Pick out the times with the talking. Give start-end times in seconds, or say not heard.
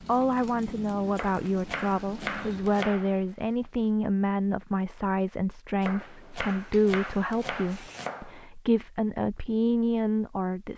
0.0-10.7.